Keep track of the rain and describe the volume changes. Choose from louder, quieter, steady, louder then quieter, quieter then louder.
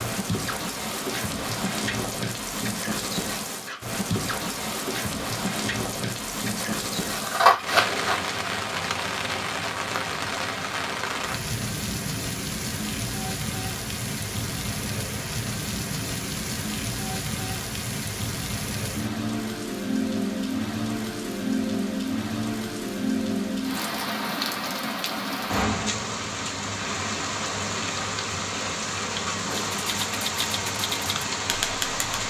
steady.